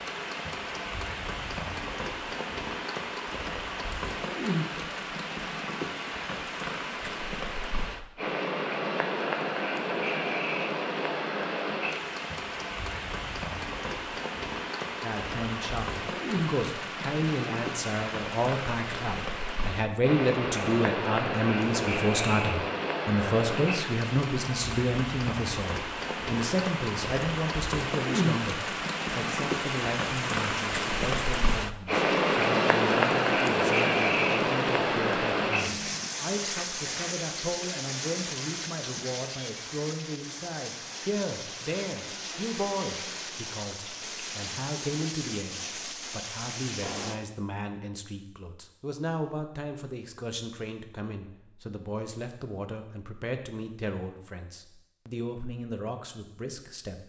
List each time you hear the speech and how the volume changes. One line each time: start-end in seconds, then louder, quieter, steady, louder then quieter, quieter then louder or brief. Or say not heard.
15.0-57.0 quieter.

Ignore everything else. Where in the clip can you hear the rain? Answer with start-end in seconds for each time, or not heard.
0.0-47.2.